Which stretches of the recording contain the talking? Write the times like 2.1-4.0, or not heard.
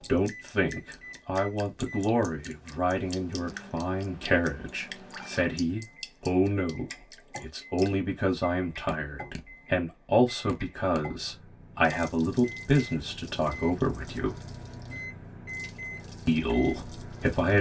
0.0-14.3, 16.2-17.5.